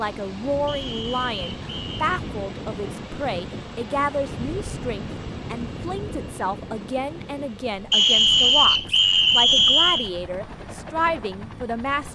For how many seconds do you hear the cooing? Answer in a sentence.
You can't hear the cooing here.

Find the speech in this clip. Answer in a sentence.
The speech can be heard from 0.0 to 12.0 s.